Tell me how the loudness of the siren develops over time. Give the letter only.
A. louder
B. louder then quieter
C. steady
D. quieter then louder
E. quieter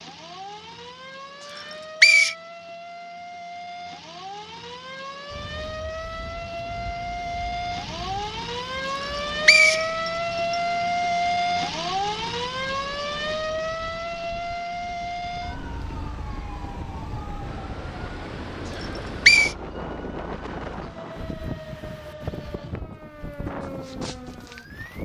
B.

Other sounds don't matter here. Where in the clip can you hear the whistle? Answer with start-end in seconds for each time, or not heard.
1.6-2.4, 8.9-10.6, 18.8-19.6.